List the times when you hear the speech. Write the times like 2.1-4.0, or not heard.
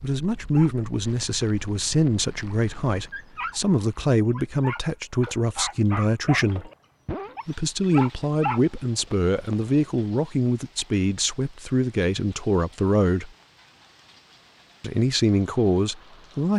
0.0-6.7, 7.5-13.3, 14.8-16.5.